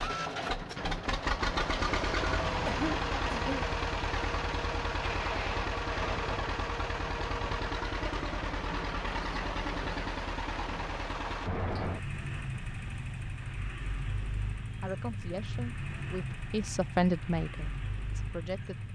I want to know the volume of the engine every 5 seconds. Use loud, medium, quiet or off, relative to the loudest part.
loud, loud, medium, medium.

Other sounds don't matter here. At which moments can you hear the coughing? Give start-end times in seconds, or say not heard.
2.6-3.7.